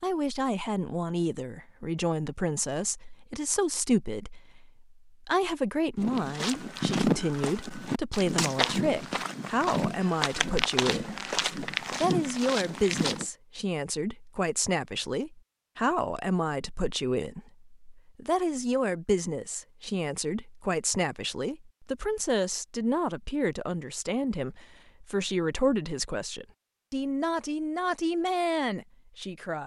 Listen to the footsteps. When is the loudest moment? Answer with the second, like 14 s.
7 s.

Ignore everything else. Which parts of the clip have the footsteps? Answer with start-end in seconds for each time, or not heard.
6.0-13.2.